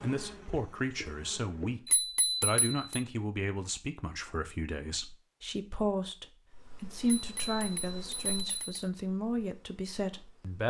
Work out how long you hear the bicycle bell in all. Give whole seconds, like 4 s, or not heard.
3 s.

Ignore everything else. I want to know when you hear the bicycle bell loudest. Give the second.
2 s.